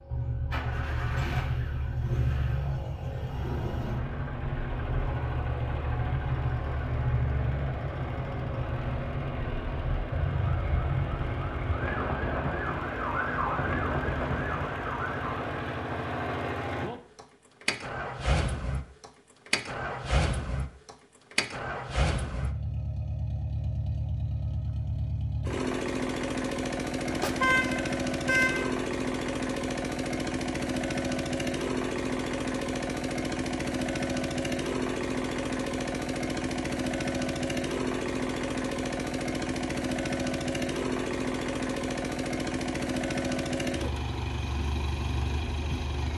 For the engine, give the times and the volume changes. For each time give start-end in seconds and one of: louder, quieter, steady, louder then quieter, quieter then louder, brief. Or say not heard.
0.0-46.1 louder.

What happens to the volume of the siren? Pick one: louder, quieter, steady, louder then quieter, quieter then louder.
steady.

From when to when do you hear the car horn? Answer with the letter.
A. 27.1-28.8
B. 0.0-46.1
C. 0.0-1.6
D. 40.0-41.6
A.